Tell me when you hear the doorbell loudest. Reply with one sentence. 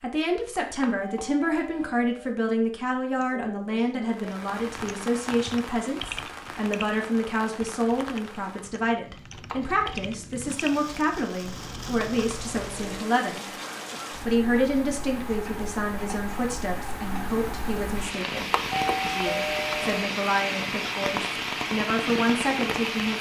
The loudest moment of the doorbell is at 19 seconds.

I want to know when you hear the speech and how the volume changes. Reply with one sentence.
You can hear the speech from 0.0 to 13.4 s, at a steady volume; and from 14.2 to 23.1 s, getting quieter then louder.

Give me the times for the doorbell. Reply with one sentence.
The doorbell can be heard from 0.7 to 2.4 s, from 9.3 to 10.0 s and from 18.4 to 20.0 s.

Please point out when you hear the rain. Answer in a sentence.
The rain can be heard from 4.0 to 23.1 s.